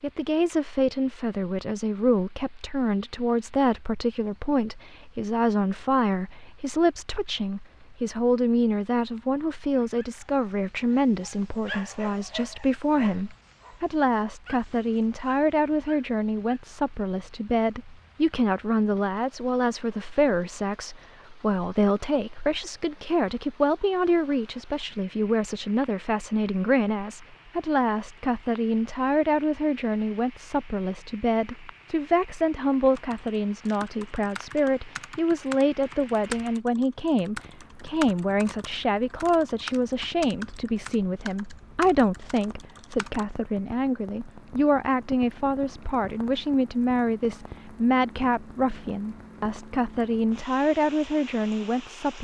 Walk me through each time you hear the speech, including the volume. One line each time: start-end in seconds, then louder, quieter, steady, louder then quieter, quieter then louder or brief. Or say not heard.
0.0-52.1 steady.